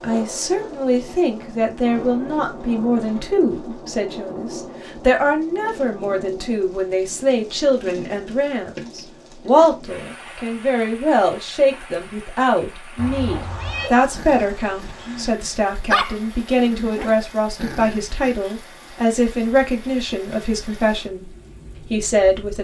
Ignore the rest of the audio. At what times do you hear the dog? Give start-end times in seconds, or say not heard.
13.3-18.5.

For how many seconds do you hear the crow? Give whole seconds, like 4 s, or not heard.
not heard.